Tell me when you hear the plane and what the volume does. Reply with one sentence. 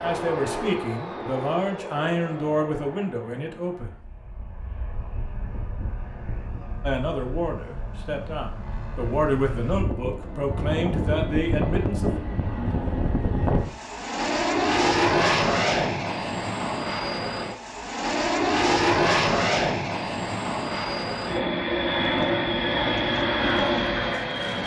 You can hear the plane from 0.0 to 24.6 s, getting louder.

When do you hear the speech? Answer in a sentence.
The speech can be heard from 0.0 to 4.0 s and from 6.8 to 12.2 s.